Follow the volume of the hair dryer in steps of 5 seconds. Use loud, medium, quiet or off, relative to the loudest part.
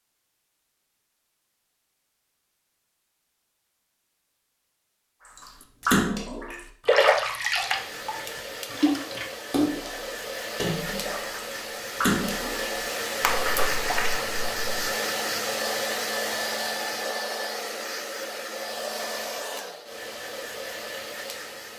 off, medium, loud, loud, medium.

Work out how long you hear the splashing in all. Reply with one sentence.
The splashing can be heard for 9 seconds in total.